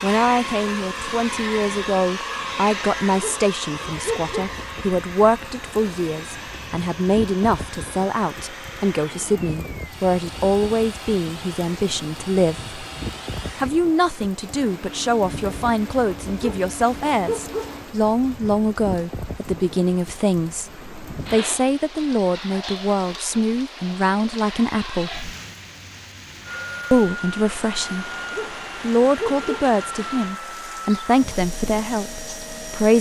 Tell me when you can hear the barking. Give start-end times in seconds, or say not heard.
3.1-4.5, 16.4-17.8, 28.3-29.7.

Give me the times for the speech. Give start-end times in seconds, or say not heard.
0.0-12.8, 13.6-25.3, 26.9-28.1, 28.8-32.9.